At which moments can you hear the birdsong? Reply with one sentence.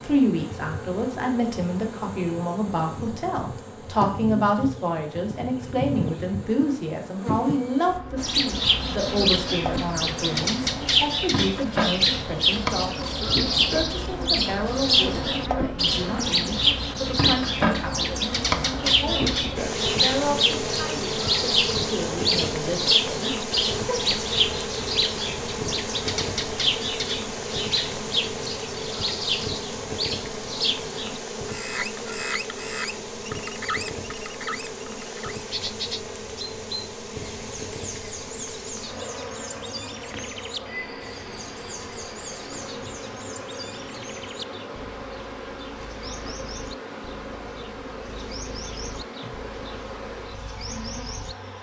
You can hear the birdsong from 8.2 to 51.4 s.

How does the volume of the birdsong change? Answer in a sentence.
The volume of the birdsong goes down.